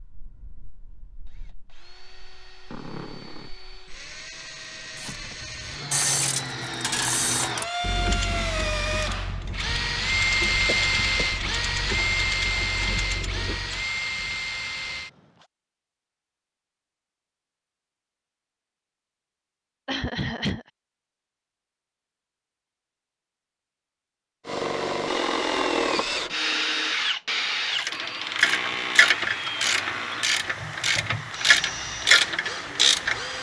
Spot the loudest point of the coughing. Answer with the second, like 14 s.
20 s.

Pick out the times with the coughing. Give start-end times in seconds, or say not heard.
10.7-11.3, 19.9-20.6.